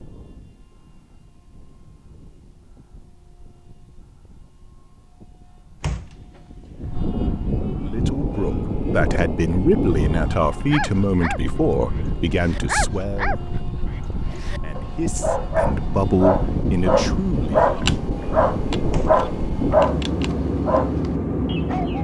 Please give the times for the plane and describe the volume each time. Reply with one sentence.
You can hear the plane from 0.0 to 21.9 s, getting louder.